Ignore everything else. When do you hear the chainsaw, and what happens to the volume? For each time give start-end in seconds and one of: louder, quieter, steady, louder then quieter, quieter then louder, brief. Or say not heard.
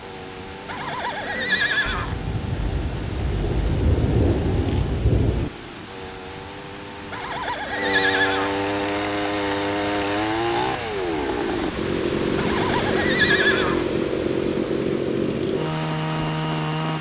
0.0-16.9 louder.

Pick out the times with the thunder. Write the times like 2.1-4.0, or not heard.
1.9-5.5.